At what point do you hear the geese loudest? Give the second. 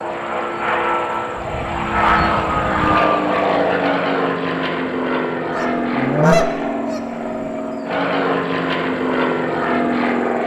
6 s.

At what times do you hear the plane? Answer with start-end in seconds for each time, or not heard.
0.0-10.4.